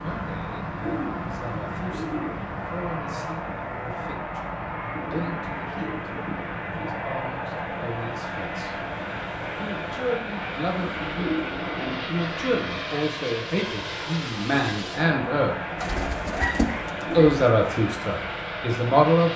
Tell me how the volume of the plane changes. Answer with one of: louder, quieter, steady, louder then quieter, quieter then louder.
steady.